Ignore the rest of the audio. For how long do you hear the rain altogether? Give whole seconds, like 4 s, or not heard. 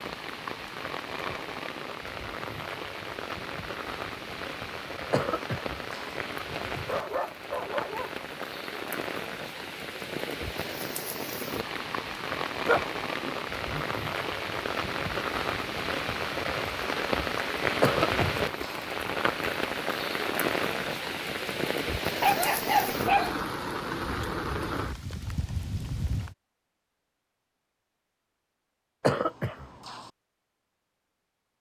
26 s.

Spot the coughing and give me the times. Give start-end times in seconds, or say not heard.
5.1-6.2, 17.8-18.9, 29.0-30.1.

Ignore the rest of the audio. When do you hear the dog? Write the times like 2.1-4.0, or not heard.
6.5-8.1, 12.7-13.8, 22.2-23.4.